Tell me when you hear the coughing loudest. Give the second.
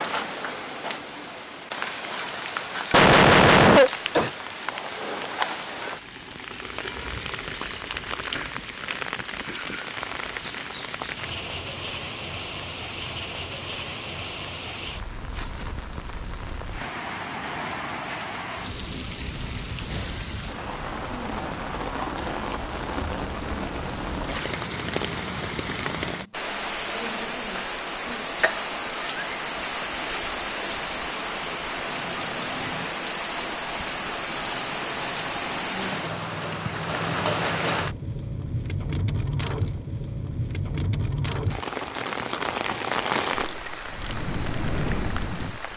4 s.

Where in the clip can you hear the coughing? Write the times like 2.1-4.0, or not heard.
2.9-4.3, 27.6-29.3.